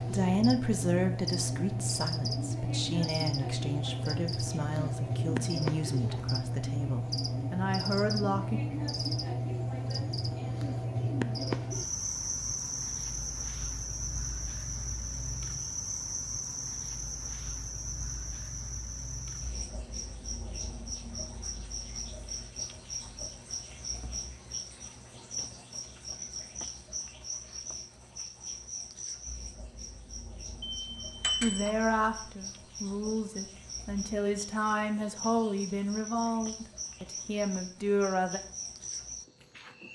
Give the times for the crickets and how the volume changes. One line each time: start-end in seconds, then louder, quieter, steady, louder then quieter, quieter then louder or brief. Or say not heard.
0.0-39.9 quieter.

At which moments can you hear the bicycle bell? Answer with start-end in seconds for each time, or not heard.
30.6-31.8.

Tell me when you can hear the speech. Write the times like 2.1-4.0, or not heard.
0.0-8.6, 31.4-38.4.